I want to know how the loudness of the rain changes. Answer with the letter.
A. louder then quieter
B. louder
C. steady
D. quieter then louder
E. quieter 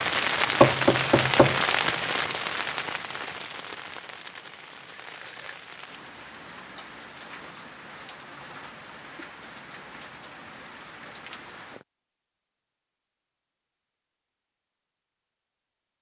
E.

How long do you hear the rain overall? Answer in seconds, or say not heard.
12 s.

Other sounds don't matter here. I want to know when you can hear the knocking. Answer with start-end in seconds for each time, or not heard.
0.1-1.6.